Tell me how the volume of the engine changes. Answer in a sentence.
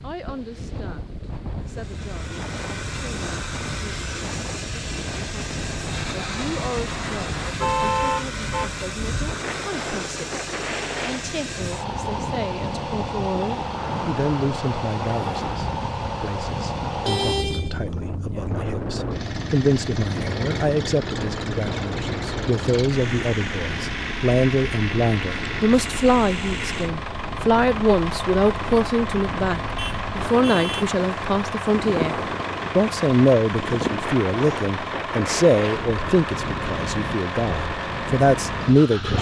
The loudness of the engine stays about the same.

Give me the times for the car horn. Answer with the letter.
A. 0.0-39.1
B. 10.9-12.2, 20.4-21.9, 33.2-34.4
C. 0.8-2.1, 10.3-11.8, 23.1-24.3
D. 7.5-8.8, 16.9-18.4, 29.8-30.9
D.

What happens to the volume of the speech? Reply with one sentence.
The loudness of the speech goes up.